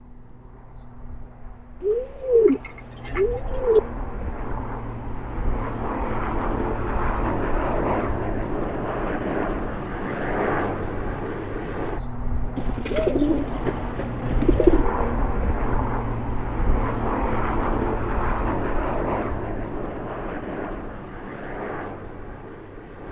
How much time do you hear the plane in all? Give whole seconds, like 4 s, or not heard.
23 s.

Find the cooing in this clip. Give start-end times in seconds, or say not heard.
1.8-3.8, 12.6-14.8.